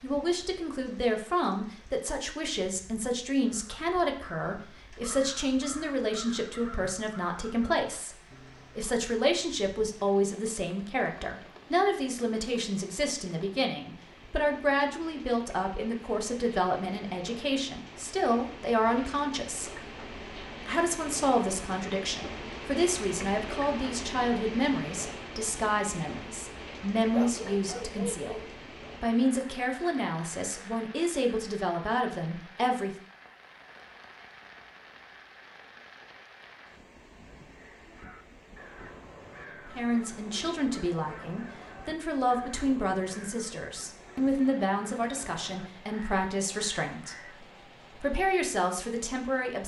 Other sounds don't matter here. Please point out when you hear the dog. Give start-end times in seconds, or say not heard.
27.1-28.6.